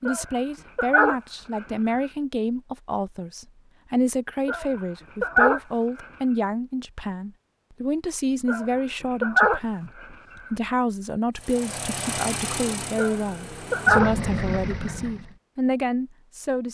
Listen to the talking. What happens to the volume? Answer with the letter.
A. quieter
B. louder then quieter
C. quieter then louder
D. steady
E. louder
D.